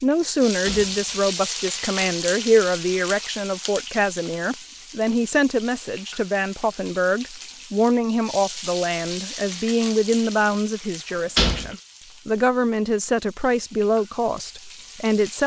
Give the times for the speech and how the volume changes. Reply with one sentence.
The speech can be heard from 0.0 to 15.4 s, at a steady volume.